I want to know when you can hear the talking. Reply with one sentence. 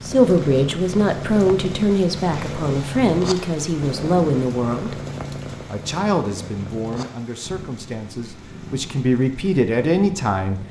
The talking can be heard from 0.0 to 5.0 s and from 5.7 to 10.6 s.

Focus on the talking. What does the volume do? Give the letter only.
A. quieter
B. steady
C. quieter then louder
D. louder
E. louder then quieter
C.